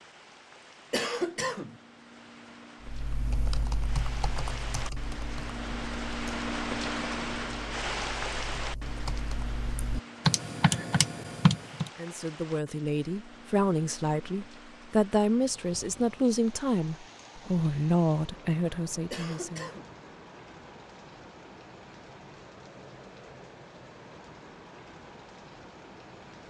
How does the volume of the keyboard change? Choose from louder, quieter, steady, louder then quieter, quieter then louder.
quieter then louder.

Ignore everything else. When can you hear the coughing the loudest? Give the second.
1 s.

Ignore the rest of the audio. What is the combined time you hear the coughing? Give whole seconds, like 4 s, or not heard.
2 s.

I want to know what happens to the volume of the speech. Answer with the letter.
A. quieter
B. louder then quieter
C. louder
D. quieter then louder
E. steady
E.